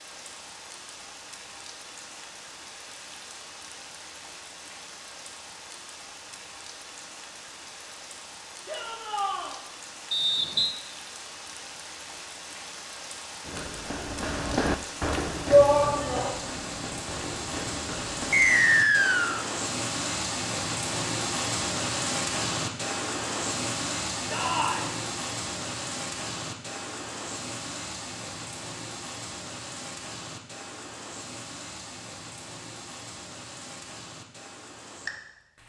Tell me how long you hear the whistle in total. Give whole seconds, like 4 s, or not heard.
2 s.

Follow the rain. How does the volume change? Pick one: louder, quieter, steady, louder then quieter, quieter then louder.
louder then quieter.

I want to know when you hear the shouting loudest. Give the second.
16 s.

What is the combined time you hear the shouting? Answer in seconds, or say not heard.
2 s.